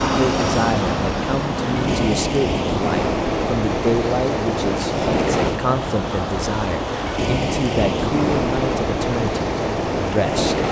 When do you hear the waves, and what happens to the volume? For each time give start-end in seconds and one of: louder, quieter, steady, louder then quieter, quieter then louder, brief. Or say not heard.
0.0-10.6 steady.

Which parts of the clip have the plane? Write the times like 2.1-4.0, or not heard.
0.0-2.1.